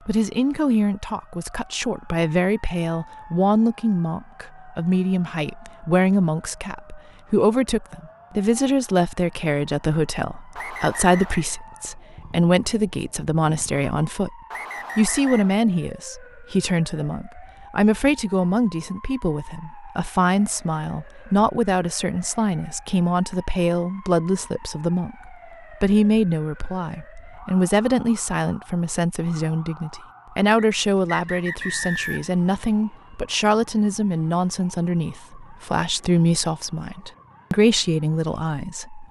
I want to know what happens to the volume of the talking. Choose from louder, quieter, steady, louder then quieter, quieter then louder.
steady.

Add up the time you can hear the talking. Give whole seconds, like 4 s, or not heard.
39 s.